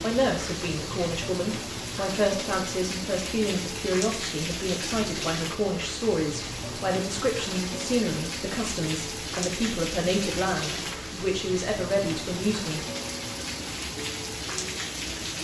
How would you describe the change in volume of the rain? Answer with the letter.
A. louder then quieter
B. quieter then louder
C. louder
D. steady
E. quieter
D.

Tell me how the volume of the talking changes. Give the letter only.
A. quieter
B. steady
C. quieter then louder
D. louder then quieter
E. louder
B.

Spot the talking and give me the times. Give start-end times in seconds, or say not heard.
0.0-12.8.